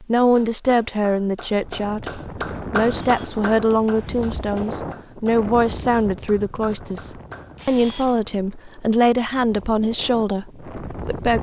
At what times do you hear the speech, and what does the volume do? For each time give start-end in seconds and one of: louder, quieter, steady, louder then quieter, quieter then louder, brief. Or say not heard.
0.0-11.3 steady.